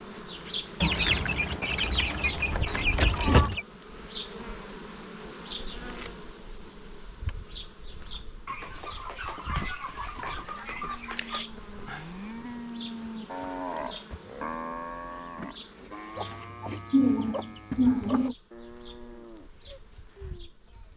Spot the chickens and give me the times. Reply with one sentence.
The chickens can be heard from 0.8 to 3.6 s, from 8.4 to 11.4 s and from 16.1 to 18.4 s.